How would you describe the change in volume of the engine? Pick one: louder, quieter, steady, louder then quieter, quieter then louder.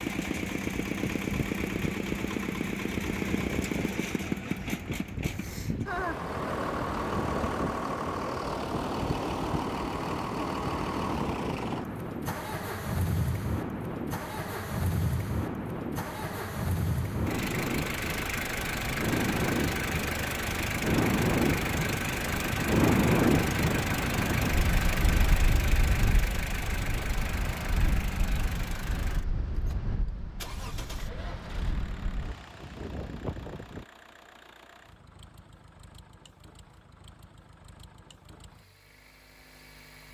quieter.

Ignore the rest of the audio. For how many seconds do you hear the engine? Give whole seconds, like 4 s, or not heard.
40 s.